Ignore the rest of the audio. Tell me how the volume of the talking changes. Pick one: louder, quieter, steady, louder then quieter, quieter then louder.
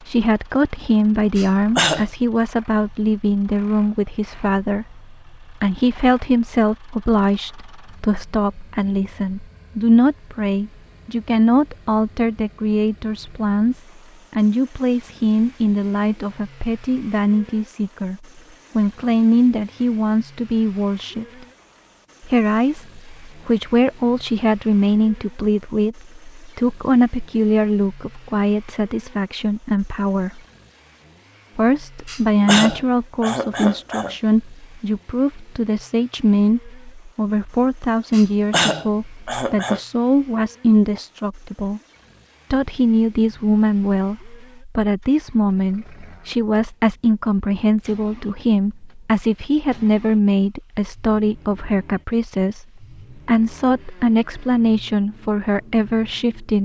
steady.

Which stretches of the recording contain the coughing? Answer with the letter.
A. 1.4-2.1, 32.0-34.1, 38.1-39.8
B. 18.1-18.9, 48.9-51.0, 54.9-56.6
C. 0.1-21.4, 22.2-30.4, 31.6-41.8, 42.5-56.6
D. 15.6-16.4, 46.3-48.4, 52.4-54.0
A.